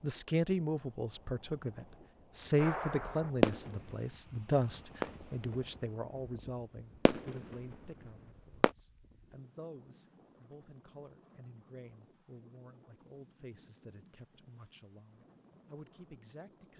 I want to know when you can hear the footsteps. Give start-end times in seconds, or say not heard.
not heard.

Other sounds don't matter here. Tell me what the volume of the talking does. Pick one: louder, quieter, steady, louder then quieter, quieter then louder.
quieter.